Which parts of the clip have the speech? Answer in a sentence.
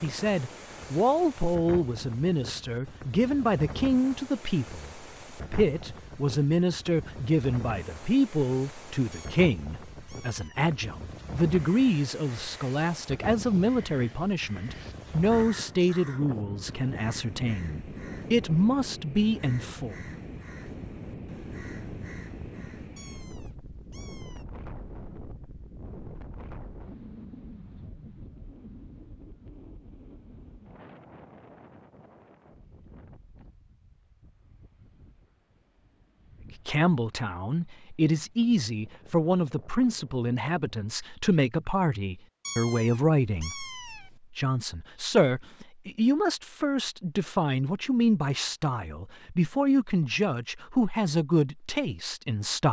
The speech can be heard from 0.0 to 19.9 s and from 36.6 to 52.6 s.